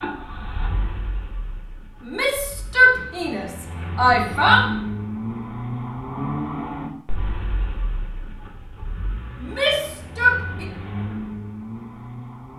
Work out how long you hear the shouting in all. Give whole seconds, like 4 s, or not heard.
4 s.